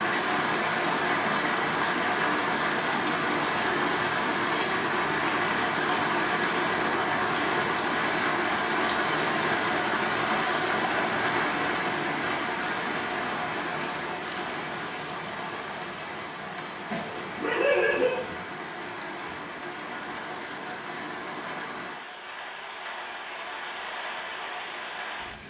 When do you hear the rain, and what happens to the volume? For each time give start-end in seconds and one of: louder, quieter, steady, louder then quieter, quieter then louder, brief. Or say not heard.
0.0-25.4 quieter.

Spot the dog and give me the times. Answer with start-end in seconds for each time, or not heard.
16.9-18.4.